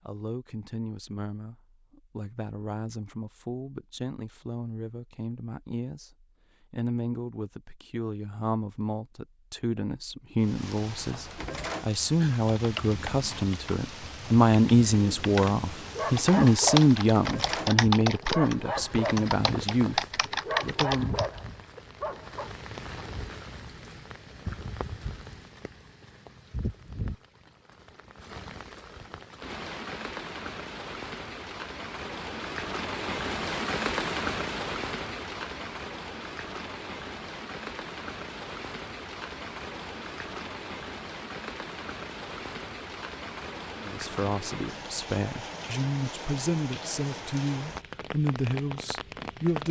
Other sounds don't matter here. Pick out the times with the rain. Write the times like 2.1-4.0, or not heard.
10.4-49.6.